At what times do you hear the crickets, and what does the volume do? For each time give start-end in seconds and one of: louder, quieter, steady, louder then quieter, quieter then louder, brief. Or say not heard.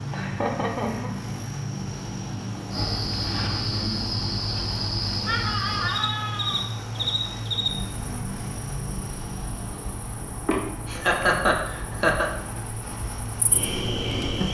2.7-14.4 quieter then louder.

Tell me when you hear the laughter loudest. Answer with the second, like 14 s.
11 s.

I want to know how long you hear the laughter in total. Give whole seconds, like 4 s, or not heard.
4 s.